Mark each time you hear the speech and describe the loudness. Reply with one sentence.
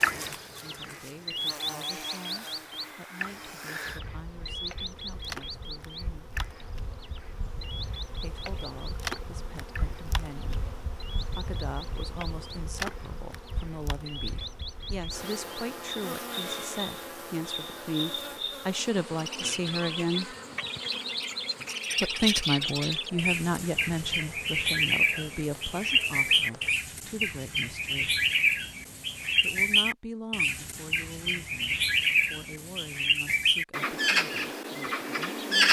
You can hear the speech from 0.0 to 6.3 s, at a steady volume; from 8.2 to 20.4 s, getting louder; from 22.0 to 28.2 s, getting quieter; and from 29.4 to 35.6 s, getting quieter.